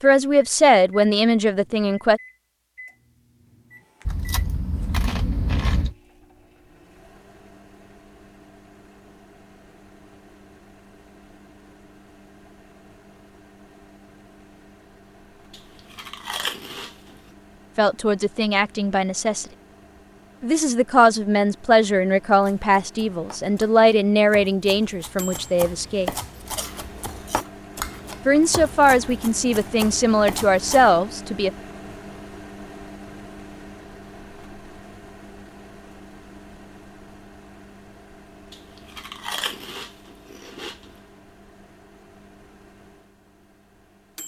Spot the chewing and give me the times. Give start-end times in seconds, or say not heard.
4.0-6.0, 15.5-17.1, 26.6-28.4, 38.5-40.8.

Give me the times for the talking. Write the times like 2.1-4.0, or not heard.
0.0-2.2, 17.8-19.4, 20.4-26.1, 28.2-31.5.